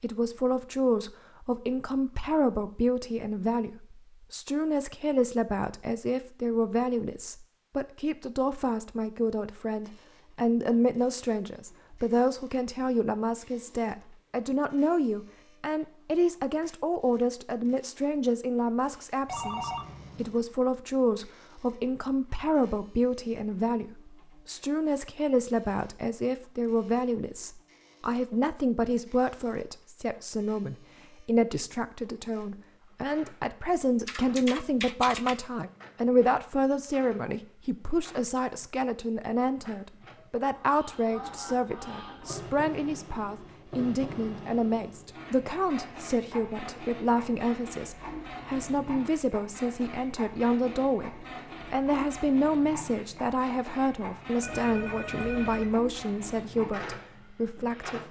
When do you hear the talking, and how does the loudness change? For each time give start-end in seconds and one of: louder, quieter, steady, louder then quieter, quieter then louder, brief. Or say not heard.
0.0-58.0 steady.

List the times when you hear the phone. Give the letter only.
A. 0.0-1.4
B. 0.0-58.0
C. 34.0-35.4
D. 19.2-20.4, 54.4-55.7
D.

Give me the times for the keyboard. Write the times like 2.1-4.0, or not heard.
34.0-35.4.